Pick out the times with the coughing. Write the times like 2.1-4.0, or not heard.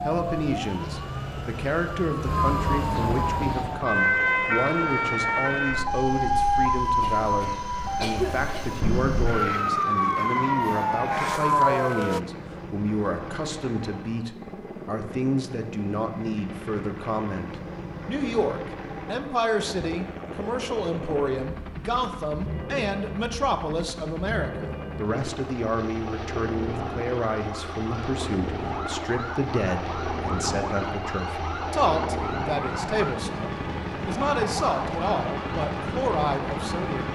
7.0-8.9.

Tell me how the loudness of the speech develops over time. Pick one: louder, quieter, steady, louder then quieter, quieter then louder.
steady.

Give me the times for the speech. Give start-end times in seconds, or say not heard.
0.0-37.1.